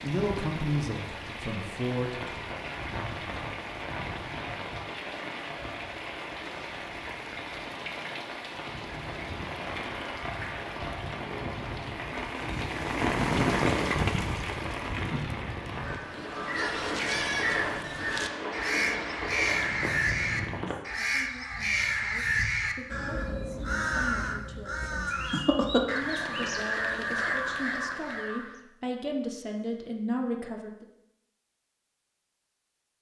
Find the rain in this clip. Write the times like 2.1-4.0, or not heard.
0.0-20.8.